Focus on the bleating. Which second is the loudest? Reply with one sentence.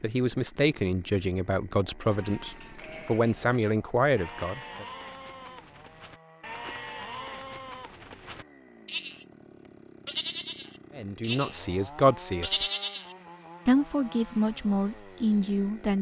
The loudest moment of the bleating is at 13 seconds.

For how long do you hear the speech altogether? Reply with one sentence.
The speech can be heard for 9 seconds in total.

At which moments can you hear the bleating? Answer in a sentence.
You can hear the bleating from 2.0 to 9.2 s, from 10.1 to 11.6 s and from 12.4 to 13.2 s.